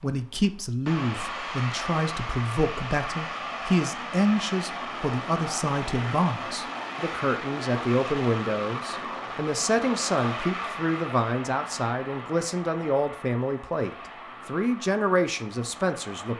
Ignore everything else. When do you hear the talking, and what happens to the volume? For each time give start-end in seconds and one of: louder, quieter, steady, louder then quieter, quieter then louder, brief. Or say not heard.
0.0-16.3 steady.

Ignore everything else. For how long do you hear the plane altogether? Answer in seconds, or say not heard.
16 s.